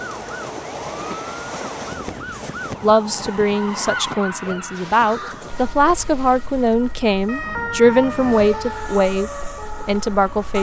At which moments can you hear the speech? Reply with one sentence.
The speech can be heard from 2.8 to 10.5 s.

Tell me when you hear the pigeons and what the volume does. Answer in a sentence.
You can't hear the pigeons here.